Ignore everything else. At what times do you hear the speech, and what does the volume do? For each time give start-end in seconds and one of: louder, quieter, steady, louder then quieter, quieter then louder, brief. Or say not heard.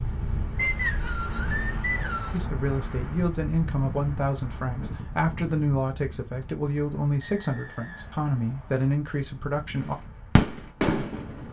2.3-9.9 steady.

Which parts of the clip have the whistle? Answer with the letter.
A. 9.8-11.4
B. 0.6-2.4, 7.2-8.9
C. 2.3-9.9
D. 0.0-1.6
B.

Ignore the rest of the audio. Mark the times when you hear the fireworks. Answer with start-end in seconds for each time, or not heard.
9.8-11.4.